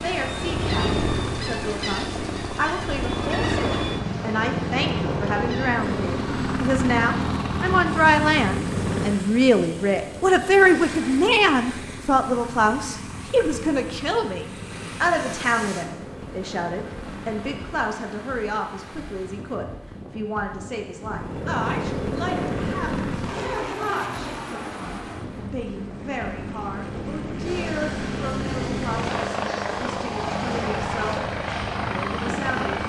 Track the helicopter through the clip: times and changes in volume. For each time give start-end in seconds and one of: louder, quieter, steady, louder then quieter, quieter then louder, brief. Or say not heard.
0.0-18.0 quieter
21.0-32.8 quieter then louder.